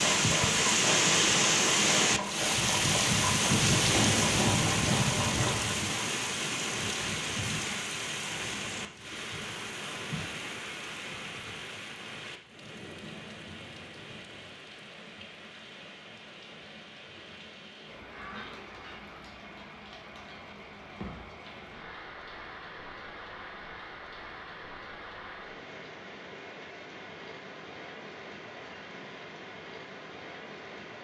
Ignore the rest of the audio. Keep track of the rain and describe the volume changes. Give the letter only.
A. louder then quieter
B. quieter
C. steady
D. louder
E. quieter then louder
B.